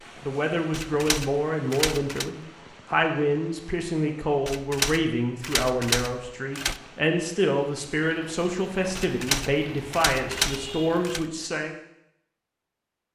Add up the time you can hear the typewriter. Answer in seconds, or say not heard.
6 s.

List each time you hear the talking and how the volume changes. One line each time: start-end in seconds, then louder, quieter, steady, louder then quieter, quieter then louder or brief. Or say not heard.
0.2-11.8 steady.